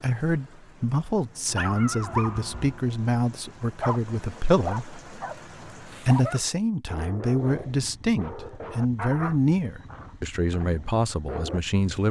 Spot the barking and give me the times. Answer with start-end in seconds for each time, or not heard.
1.5-11.6.